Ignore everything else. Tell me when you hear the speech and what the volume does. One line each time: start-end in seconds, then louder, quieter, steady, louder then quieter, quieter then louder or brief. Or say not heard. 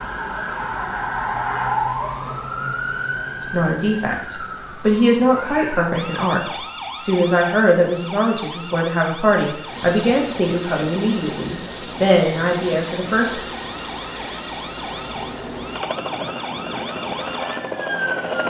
3.5-13.4 steady.